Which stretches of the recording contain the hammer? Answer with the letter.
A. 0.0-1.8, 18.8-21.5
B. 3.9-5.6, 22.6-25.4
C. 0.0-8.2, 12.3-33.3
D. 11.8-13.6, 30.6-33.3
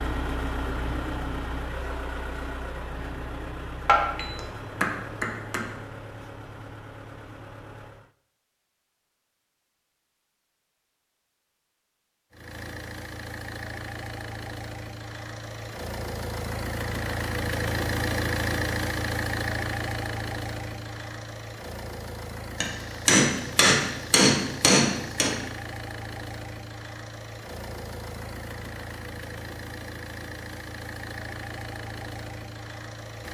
B.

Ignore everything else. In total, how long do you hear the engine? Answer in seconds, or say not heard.
29 s.